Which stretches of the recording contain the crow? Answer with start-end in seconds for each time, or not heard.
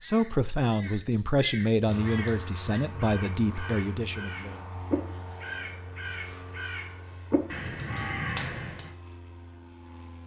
0.0-8.9.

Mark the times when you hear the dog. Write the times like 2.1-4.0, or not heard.
not heard.